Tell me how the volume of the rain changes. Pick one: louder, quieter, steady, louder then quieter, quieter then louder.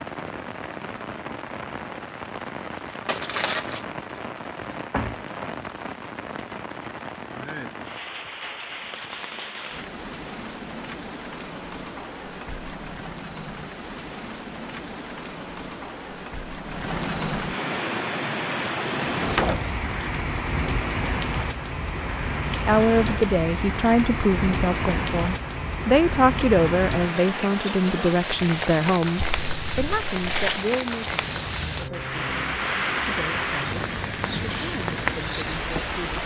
louder.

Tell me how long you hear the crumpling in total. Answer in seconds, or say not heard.
2 s.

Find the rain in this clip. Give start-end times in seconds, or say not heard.
0.0-36.2.